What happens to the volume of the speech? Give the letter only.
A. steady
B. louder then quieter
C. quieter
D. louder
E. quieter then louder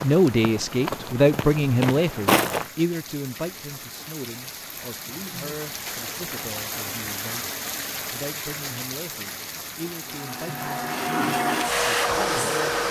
C.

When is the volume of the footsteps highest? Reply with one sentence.
The volume of the footsteps peaks at 2 seconds.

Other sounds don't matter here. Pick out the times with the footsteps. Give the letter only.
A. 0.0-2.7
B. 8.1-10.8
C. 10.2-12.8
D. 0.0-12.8
A.